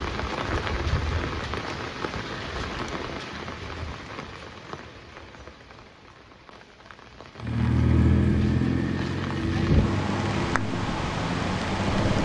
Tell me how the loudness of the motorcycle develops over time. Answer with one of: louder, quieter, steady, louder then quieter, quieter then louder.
quieter.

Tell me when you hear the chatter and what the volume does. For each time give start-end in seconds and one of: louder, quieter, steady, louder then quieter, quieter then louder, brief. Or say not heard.
not heard.